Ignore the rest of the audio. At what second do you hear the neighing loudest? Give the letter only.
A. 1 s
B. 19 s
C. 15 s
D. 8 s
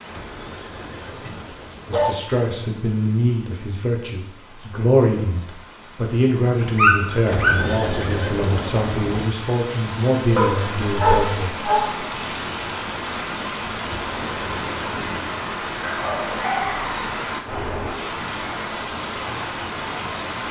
D.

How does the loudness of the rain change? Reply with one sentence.
The loudness of the rain goes up.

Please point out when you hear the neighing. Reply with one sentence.
The neighing can be heard from 0.1 to 2.1 s, from 7.2 to 9.2 s and from 13.8 to 15.3 s.